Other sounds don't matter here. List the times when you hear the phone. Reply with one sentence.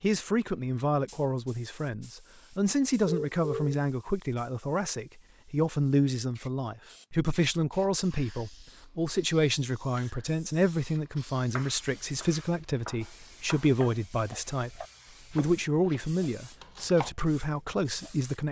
You can hear the phone from 3.0 to 3.8 s.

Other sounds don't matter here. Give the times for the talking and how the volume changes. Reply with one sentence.
The talking can be heard from 0.0 to 18.4 s, at a steady volume.